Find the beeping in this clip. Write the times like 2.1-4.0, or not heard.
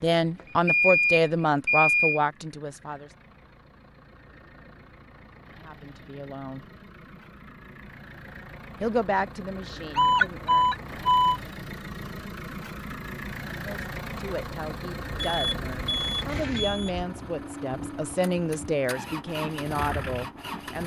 0.3-2.2, 9.9-11.3, 15.2-17.1.